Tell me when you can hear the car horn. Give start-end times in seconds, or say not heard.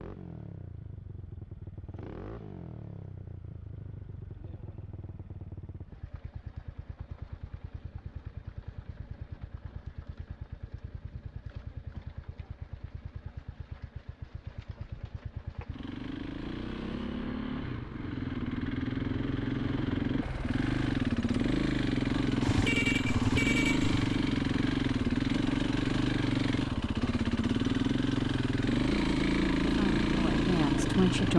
22.4-24.2.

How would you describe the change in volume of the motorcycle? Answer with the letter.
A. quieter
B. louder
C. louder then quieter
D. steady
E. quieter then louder
B.